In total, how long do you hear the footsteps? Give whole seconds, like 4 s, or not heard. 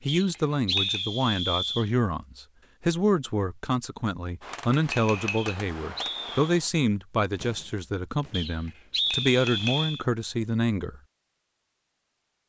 not heard.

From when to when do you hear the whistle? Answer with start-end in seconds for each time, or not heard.
0.1-1.9, 5.3-6.6, 8.3-10.0.